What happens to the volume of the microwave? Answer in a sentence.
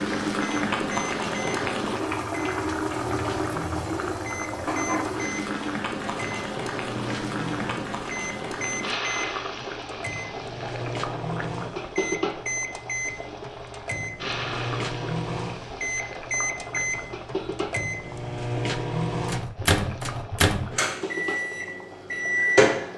The loudness of the microwave goes up.